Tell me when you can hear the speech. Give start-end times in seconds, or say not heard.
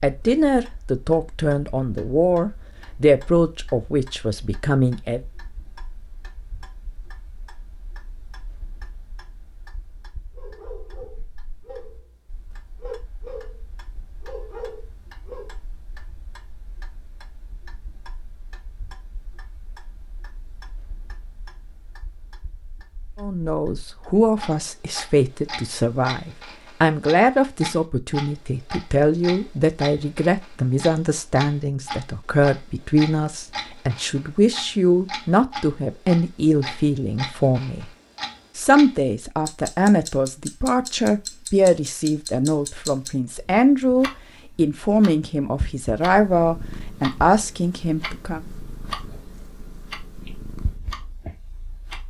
0.0-5.2, 23.2-37.9, 38.5-48.4.